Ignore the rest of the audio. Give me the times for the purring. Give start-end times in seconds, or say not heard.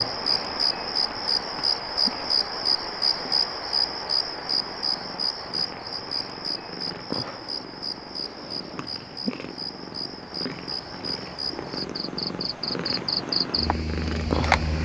0.0-14.8.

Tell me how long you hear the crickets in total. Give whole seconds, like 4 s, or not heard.
15 s.